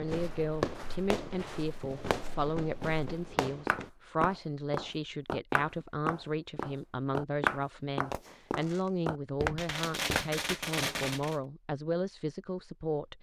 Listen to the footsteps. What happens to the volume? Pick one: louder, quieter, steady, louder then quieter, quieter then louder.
louder.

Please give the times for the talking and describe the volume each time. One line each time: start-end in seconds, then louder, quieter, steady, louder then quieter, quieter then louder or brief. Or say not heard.
0.0-13.1 steady.